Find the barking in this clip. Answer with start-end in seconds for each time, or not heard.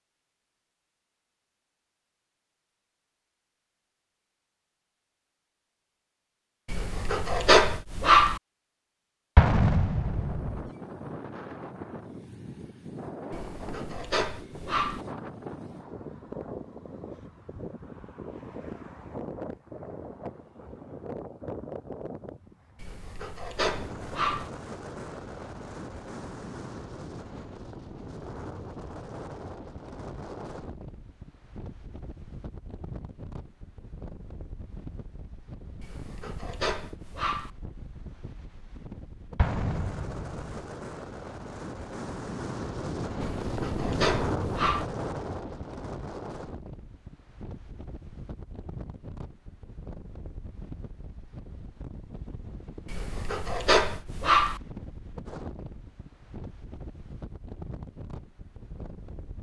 6.7-8.4, 13.3-15.1, 22.8-24.5, 35.8-37.5, 43.4-44.9, 52.9-54.6.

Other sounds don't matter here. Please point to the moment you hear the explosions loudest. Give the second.
10 s.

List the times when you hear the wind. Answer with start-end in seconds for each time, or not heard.
9.9-59.3.